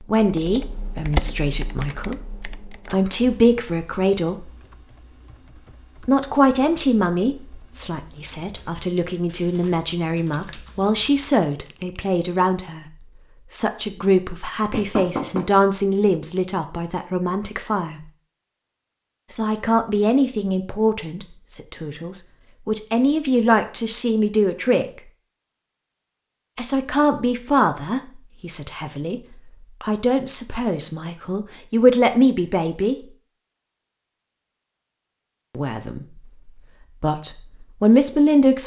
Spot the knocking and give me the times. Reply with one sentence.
The knocking can be heard from 14.7 to 15.4 s.